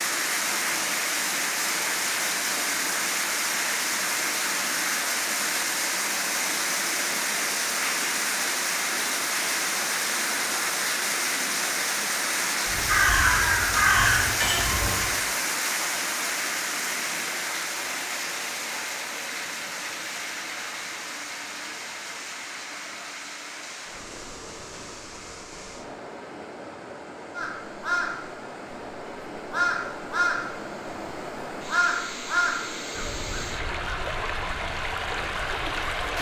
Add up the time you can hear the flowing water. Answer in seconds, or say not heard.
36 s.